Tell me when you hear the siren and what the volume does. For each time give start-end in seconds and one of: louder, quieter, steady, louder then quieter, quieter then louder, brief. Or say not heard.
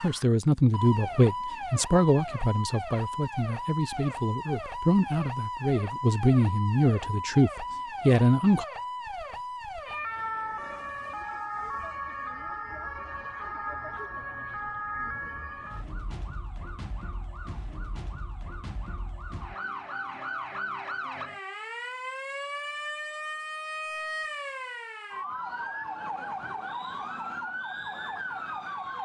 0.0-29.0 steady.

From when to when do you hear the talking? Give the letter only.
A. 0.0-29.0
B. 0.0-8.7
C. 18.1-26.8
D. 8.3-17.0
B.